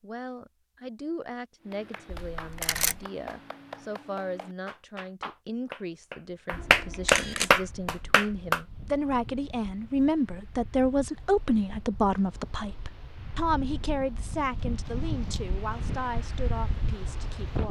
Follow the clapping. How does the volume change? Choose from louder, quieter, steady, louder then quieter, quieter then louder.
louder.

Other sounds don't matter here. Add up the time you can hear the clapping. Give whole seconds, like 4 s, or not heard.
7 s.